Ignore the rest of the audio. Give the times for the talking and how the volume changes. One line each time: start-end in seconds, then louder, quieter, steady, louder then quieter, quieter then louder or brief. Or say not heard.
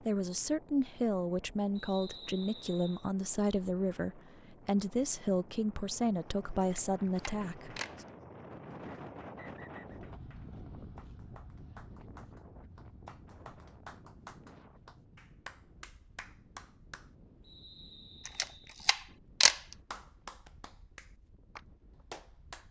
0.1-8.1 steady.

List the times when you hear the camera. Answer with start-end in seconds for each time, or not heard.
6.6-8.0, 18.2-19.6.